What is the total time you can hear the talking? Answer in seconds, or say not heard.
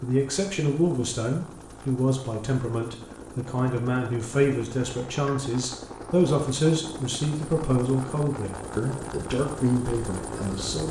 11 s.